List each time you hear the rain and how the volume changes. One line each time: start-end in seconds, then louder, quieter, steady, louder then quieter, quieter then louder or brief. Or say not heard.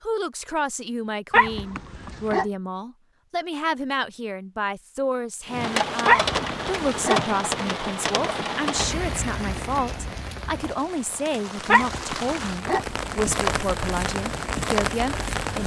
5.5-15.6 quieter then louder.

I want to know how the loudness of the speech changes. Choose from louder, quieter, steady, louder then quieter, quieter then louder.
steady.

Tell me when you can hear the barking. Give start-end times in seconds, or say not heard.
1.3-2.5, 6.0-7.2, 11.7-12.8.